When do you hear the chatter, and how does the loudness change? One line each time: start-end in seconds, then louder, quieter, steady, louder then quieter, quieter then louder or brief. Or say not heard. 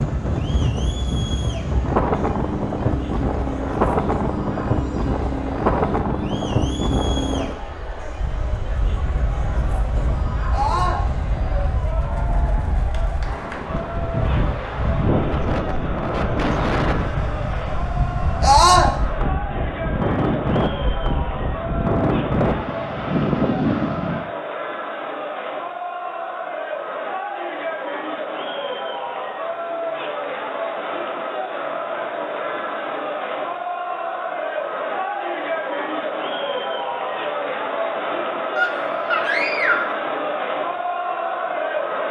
0.0-42.0 louder.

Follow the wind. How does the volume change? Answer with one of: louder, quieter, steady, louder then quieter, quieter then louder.
quieter then louder.